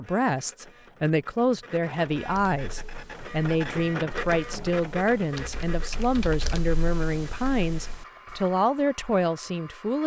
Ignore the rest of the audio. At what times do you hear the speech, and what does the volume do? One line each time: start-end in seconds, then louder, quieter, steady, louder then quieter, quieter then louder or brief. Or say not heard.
0.0-10.0 steady.